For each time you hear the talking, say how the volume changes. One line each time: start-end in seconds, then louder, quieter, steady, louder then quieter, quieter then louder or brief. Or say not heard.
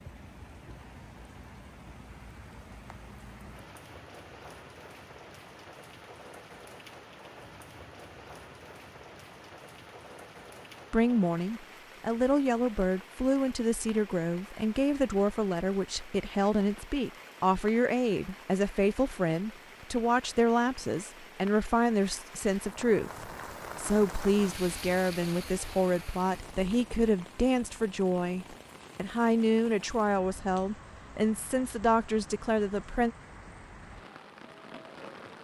10.9-33.1 steady.